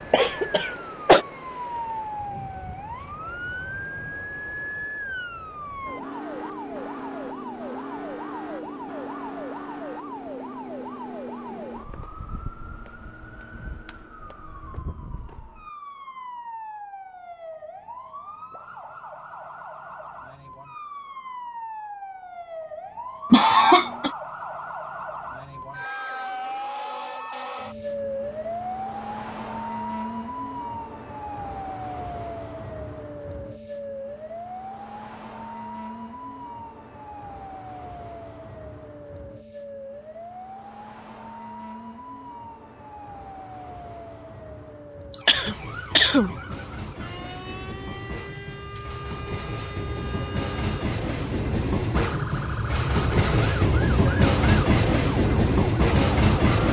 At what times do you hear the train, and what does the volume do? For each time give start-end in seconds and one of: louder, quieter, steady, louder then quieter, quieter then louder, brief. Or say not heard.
45.3-56.6 louder.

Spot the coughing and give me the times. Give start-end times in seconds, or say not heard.
0.1-1.2, 23.3-24.1, 45.2-46.3.